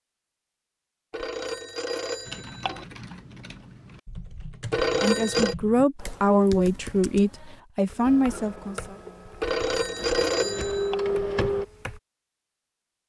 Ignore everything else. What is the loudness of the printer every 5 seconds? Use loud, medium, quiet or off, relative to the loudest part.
off, quiet, loud.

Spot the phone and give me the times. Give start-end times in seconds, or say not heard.
1.1-2.9, 4.7-5.5, 9.4-10.9.